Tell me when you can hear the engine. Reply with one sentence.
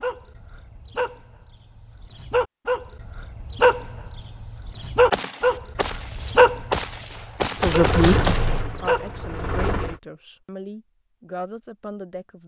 The engine can be heard from 7.5 to 10.0 s.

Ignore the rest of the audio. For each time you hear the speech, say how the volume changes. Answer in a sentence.
The speech can be heard from 7.6 to 12.4 s, getting quieter.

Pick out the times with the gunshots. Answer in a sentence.
You can hear the gunshots from 5.1 to 8.6 s.